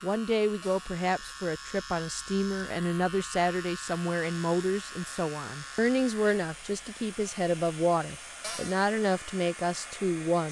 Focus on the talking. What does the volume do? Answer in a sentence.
The volume of the talking stays about the same.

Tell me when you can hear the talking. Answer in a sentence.
You can hear the talking from 0.0 to 10.4 s.